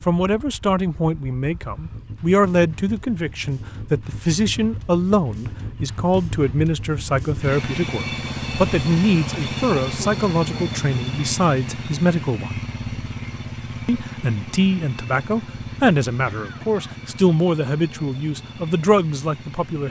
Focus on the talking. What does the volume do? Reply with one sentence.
The volume of the talking stays about the same.